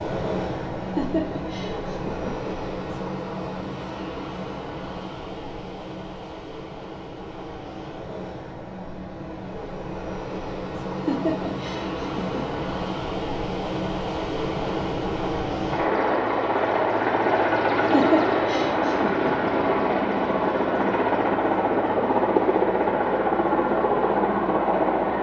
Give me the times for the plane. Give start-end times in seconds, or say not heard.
0.0-25.1.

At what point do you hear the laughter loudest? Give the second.
18 s.